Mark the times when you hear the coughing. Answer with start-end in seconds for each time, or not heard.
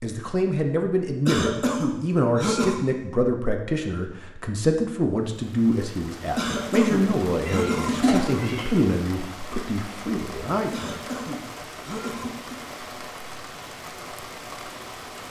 1.2-2.9, 6.3-8.4, 10.7-12.6.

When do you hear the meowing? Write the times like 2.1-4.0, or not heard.
7.5-8.7.